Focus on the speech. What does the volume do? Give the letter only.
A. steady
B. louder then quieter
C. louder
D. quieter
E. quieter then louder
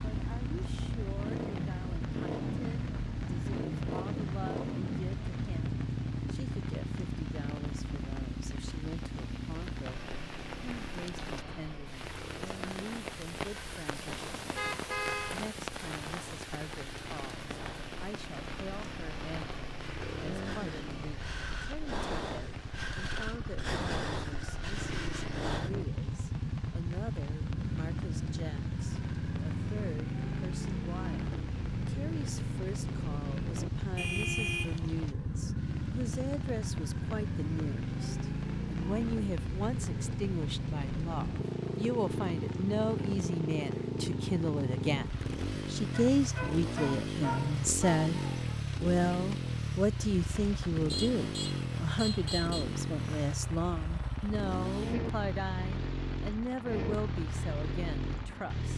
C.